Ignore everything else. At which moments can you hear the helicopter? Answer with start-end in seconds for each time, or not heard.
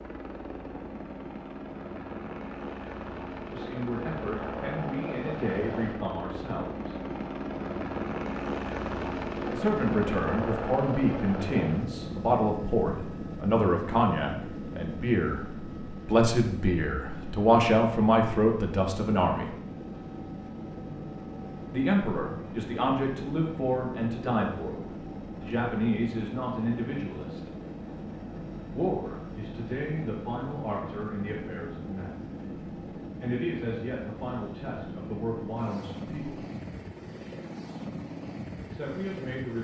0.0-39.5.